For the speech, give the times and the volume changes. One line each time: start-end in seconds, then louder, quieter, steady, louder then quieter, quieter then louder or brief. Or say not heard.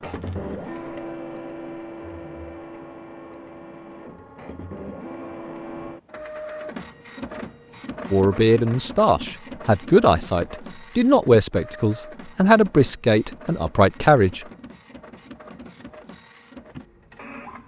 8.1-14.4 steady.